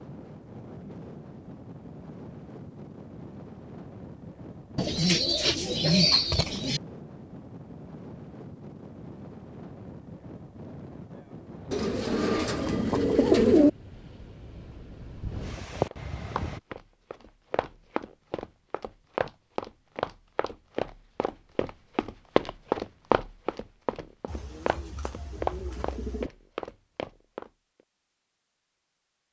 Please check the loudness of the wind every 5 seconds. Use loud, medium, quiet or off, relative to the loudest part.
medium, medium, quiet, loud, off, off.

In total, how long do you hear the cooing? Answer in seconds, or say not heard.
6 s.